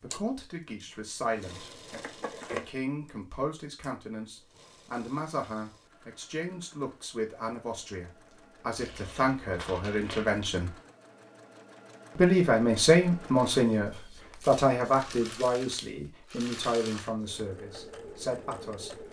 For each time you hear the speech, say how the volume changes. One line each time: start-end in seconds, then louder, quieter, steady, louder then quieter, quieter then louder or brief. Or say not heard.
0.0-1.8 brief
2.5-10.8 louder
12.2-19.0 quieter.